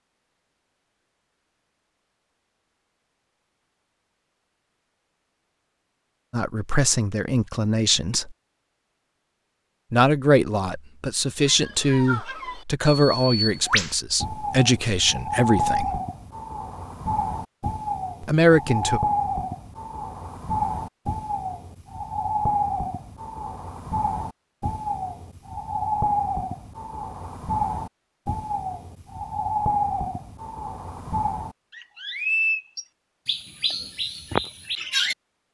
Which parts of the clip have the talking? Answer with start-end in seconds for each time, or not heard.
6.3-8.3, 9.9-16.0, 18.2-19.0.